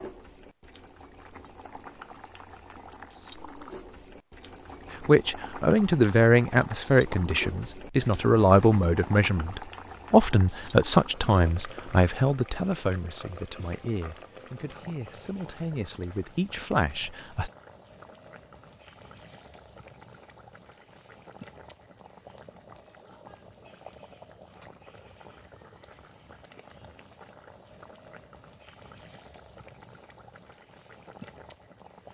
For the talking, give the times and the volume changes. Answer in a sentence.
The talking can be heard from 5.0 to 17.5 s, getting quieter.